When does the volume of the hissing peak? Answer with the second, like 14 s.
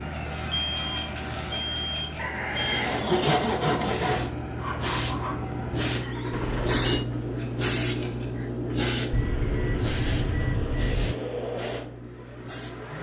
7 s.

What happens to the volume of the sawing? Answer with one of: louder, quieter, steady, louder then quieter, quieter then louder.
louder then quieter.